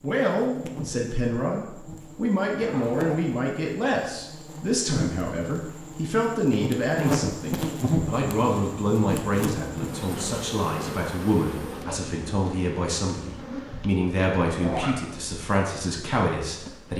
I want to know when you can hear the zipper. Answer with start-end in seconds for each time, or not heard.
2.5-3.2, 14.3-15.0.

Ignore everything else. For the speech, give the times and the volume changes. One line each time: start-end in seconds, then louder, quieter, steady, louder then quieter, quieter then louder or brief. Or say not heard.
0.0-16.9 steady.